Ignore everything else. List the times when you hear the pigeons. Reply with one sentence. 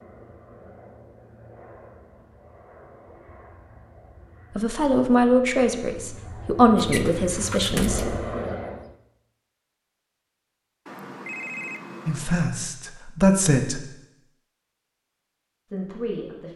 The pigeons can be heard from 6.8 to 8.2 s.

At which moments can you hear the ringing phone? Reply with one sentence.
The ringing phone can be heard from 10.8 to 12.4 s.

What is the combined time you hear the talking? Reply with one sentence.
The talking can be heard for 6 seconds in total.